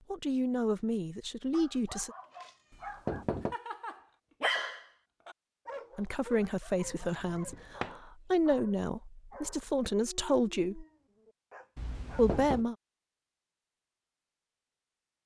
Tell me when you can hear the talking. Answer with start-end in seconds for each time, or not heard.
0.1-2.1, 6.0-10.8, 12.2-12.8.